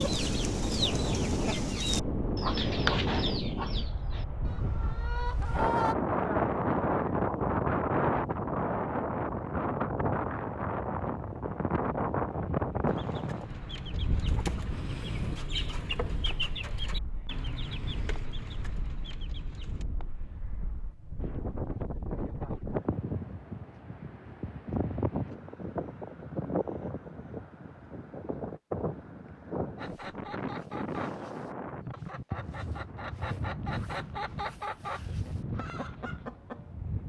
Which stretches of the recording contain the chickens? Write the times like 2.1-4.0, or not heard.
0.0-6.0, 12.8-19.9, 29.8-36.8.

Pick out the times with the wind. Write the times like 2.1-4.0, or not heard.
0.0-37.0.